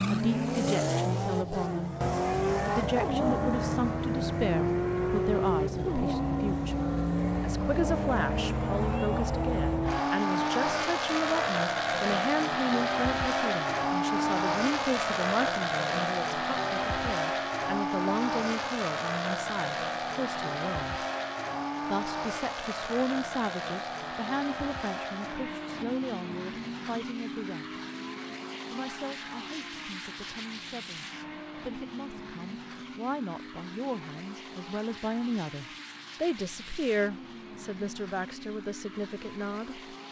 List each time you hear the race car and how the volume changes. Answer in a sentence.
You can hear the race car from 0.0 to 40.0 s, getting quieter.